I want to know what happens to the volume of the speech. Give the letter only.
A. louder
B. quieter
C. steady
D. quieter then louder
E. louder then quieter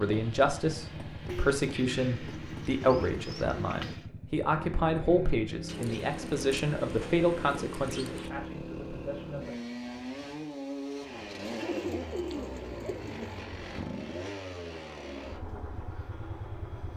B.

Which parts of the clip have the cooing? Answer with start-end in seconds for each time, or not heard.
1.2-4.0, 5.7-8.3, 11.4-13.4.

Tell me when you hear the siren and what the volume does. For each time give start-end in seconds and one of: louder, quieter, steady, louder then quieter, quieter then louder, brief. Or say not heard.
not heard.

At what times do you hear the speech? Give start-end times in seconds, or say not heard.
0.0-9.6.